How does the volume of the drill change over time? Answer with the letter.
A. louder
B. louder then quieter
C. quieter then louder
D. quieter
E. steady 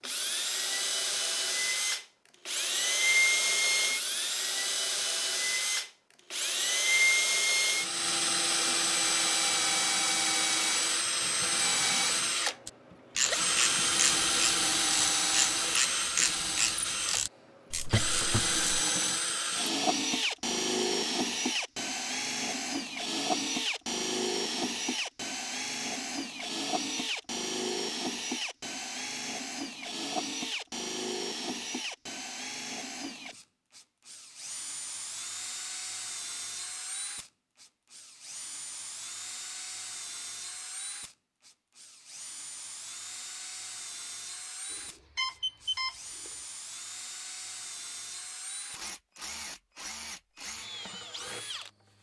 D.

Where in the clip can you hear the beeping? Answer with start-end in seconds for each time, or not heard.
44.7-46.3.